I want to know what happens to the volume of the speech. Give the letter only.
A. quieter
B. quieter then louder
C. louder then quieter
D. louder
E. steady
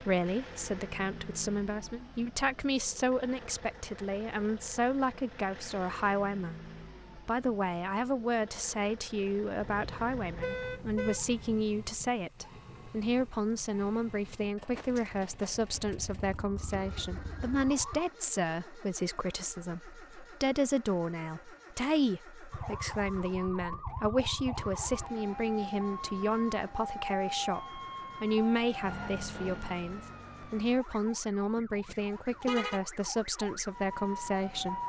E.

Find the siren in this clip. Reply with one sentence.
You can hear the siren from 14.8 to 18.1 s and from 22.5 to 34.8 s.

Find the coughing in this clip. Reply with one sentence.
You can't hear the coughing here.